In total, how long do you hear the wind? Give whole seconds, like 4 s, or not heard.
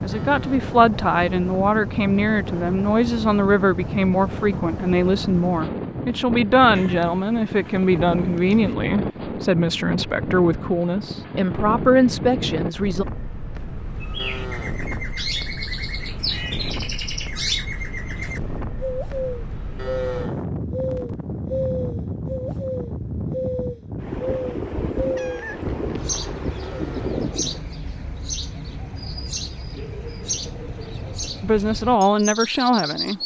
28 s.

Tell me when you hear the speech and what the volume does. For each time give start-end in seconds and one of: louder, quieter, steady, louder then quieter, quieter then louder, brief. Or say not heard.
0.0-13.1 steady
31.4-33.2 brief.